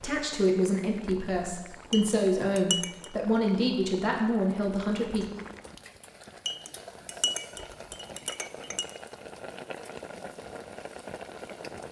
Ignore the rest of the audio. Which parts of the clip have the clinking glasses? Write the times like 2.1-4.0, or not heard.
1.9-3.1, 6.5-8.8.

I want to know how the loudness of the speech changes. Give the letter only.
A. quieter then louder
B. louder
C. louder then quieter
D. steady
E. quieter
D.